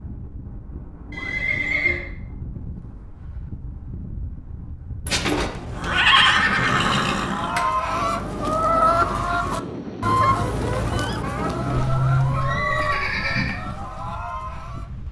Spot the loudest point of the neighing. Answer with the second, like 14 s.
6 s.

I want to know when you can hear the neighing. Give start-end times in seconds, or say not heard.
1.1-2.0, 5.0-7.7, 11.7-13.6.